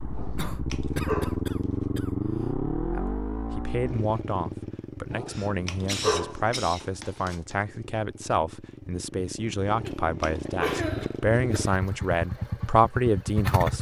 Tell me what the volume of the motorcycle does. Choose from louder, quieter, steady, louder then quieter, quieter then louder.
quieter then louder.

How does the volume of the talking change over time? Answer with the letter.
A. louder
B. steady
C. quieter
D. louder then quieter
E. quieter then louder
A.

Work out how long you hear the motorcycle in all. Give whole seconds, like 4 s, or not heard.
14 s.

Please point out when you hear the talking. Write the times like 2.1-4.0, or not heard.
2.9-13.7.